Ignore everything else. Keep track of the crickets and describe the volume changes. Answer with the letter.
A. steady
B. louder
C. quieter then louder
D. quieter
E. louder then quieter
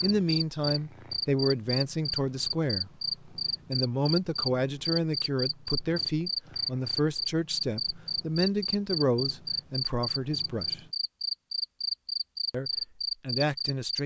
A.